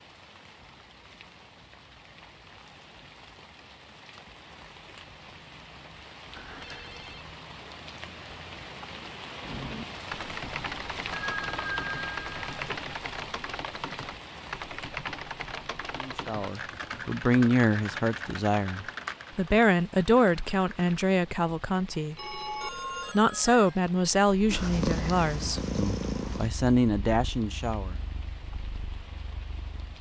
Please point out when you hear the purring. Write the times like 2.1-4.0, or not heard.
24.3-29.9.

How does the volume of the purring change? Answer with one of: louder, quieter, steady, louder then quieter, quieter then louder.
quieter.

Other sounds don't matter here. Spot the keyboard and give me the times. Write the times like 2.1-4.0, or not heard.
9.4-20.9.